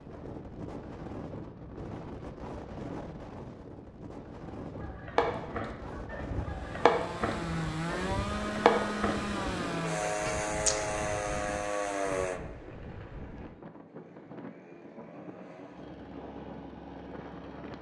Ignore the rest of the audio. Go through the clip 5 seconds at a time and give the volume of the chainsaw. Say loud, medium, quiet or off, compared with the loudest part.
off, loud, loud, quiet.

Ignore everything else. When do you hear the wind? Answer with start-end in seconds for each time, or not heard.
0.0-17.7.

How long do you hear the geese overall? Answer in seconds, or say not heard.
6 s.